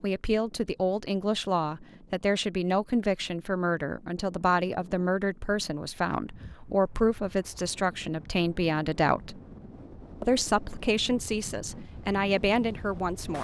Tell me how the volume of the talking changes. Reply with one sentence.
The volume of the talking stays about the same.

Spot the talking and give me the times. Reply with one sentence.
You can hear the talking from 0.0 to 9.4 s and from 10.2 to 13.3 s.